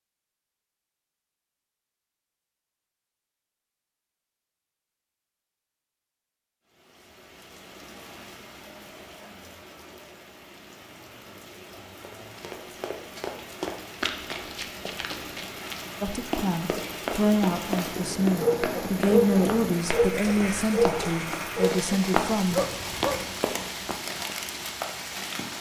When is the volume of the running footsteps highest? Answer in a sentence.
The loudest moment of the running footsteps is at 22 seconds.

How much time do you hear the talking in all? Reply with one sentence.
You can hear the talking for 7 seconds altogether.